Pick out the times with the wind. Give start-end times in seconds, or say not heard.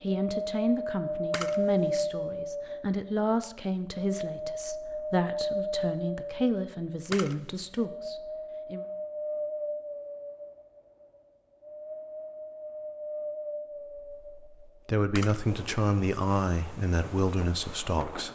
0.0-18.3.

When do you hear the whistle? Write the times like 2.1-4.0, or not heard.
not heard.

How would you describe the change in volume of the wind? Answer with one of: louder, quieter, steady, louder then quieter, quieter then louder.
quieter.